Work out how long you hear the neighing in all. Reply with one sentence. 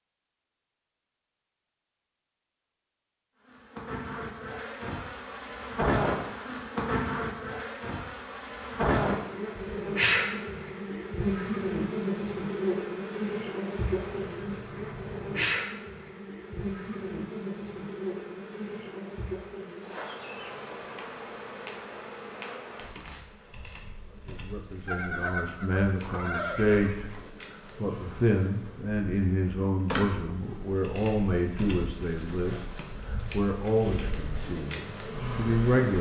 The neighing can be heard for 4 seconds in total.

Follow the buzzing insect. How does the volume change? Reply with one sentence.
The volume of the buzzing insect goes down, then up.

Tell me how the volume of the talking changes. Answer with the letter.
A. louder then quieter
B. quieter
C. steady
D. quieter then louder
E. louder
C.